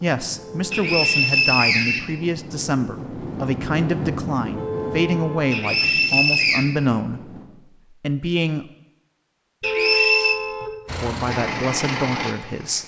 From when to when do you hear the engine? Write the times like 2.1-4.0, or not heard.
10.8-12.8.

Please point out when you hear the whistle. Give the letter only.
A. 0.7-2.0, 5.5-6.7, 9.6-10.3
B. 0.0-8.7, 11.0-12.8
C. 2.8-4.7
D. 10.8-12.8
A.